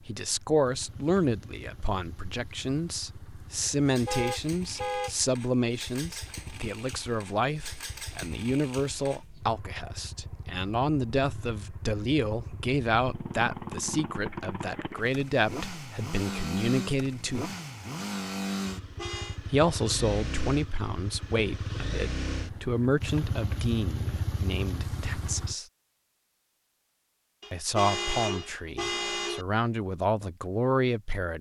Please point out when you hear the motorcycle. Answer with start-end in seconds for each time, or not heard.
0.0-25.6.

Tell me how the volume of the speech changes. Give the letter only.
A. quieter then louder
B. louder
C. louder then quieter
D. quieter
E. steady
E.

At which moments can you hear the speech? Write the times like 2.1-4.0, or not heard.
0.1-17.5, 19.5-25.6, 27.5-31.3.